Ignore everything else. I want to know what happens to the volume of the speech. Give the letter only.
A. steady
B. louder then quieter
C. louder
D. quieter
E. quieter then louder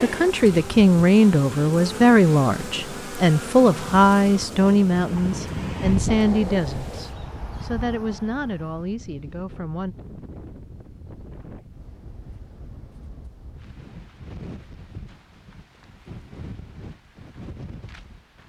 D.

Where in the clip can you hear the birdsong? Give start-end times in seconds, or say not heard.
not heard.